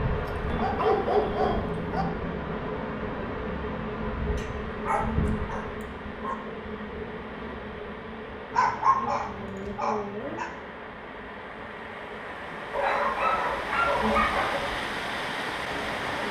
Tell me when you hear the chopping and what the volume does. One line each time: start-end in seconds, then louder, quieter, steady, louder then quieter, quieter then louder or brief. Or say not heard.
not heard.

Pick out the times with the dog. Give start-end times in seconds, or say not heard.
0.5-2.0, 4.3-6.3, 8.5-10.5, 12.7-14.7.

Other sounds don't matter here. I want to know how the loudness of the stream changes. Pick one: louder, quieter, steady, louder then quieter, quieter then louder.
louder.